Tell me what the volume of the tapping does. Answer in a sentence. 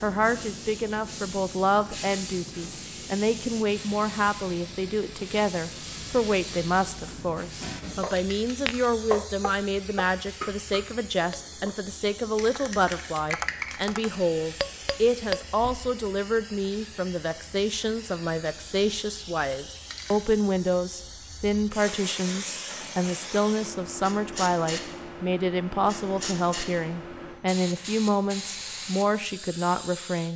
The volume of the tapping goes down, then up.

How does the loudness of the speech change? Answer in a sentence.
The volume of the speech stays about the same.